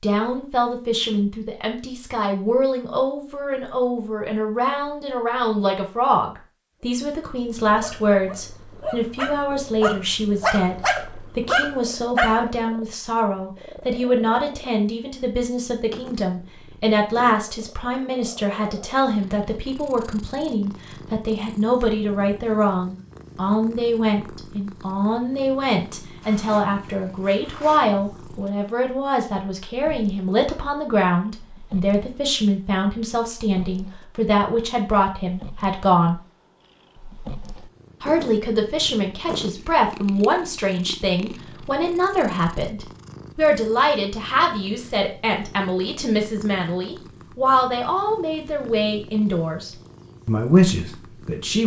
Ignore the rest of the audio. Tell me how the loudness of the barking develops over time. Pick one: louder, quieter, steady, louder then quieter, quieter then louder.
louder.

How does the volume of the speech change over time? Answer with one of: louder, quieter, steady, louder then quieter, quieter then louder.
steady.